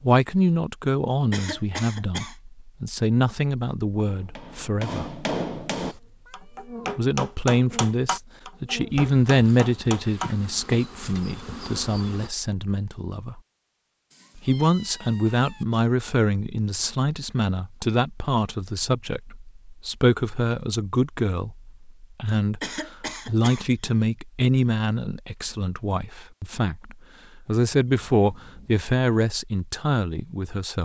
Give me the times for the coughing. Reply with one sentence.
The coughing can be heard from 1.3 to 2.4 s and from 22.6 to 23.6 s.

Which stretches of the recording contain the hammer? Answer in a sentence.
You can hear the hammer from 4.0 to 11.2 s.